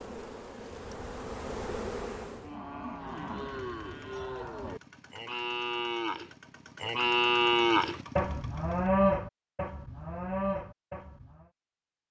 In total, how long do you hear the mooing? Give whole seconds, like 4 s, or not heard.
11 s.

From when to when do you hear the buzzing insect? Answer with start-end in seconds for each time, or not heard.
0.0-2.5.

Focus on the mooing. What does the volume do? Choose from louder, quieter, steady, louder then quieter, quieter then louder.
louder then quieter.